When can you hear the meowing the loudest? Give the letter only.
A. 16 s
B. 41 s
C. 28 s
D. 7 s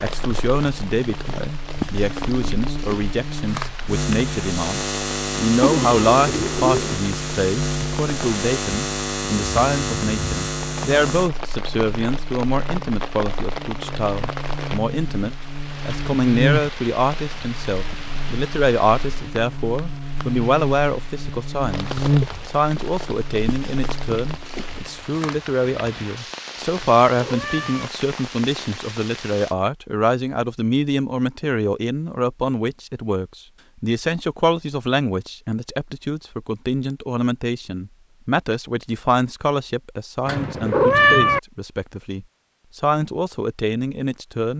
B.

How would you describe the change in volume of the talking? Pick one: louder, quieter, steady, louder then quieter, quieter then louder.
steady.